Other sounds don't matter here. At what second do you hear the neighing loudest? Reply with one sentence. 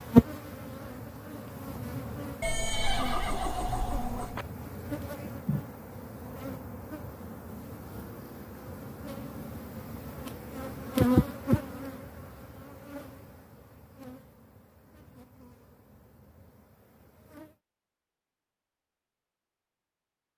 The volume of the neighing peaks at 3 seconds.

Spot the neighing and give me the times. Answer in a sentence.
The neighing can be heard from 2.4 to 4.5 s.